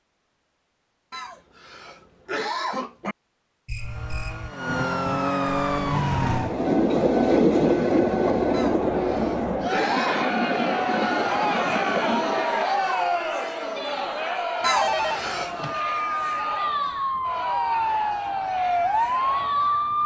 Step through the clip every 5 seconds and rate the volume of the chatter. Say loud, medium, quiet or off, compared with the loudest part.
off, medium, loud, medium.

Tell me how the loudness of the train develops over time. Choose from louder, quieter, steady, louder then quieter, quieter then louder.
quieter.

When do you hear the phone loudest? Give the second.
15 s.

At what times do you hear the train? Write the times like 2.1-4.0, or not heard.
6.2-12.7.